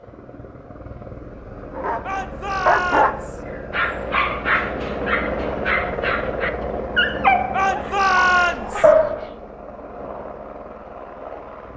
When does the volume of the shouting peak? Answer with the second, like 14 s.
8 s.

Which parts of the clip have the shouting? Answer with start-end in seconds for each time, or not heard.
2.0-3.4, 7.5-8.9.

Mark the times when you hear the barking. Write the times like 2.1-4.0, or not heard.
1.8-9.2.